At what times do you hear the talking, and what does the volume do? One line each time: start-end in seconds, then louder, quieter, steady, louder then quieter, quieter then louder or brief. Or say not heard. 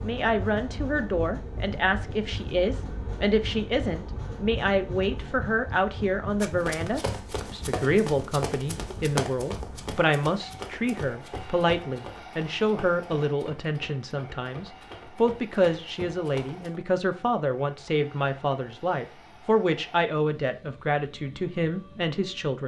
0.0-22.6 steady.